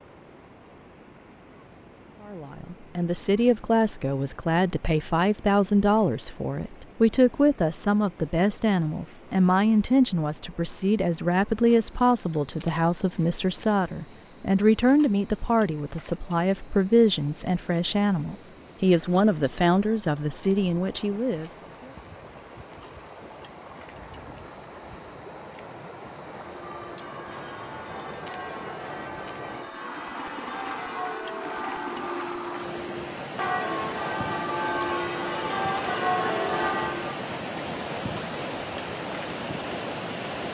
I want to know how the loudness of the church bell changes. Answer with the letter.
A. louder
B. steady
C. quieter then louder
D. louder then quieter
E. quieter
A.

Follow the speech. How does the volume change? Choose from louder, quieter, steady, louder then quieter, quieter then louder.
steady.